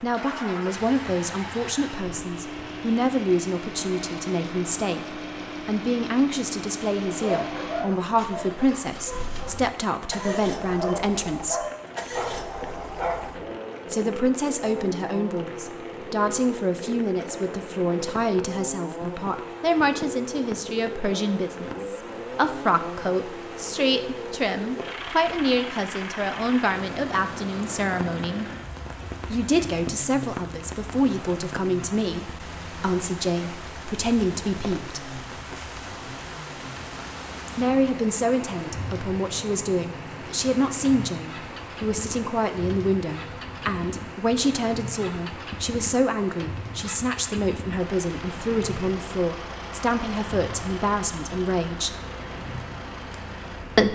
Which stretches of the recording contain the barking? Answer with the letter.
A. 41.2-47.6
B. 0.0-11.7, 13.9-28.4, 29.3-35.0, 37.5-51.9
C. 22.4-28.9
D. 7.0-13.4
D.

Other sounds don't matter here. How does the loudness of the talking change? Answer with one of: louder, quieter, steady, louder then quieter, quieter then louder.
steady.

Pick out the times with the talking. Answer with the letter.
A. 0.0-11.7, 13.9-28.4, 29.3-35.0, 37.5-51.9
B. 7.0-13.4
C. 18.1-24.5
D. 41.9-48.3
A.